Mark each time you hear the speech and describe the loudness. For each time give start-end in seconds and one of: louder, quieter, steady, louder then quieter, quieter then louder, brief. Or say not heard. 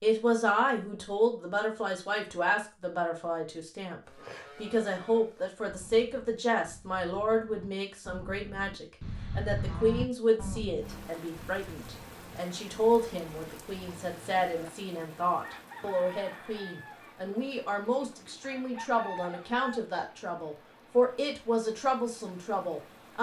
0.0-23.1 steady.